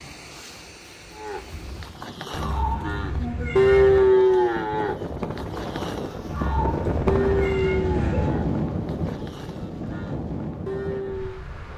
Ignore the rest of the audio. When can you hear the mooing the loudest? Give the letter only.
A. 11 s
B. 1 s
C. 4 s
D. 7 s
C.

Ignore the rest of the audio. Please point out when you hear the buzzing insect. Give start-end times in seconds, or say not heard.
not heard.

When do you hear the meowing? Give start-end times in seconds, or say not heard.
2.3-4.2, 6.2-8.3.